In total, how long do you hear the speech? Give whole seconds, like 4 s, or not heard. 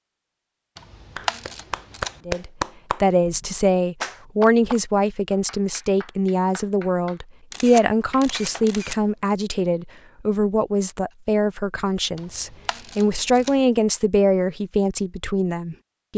14 s.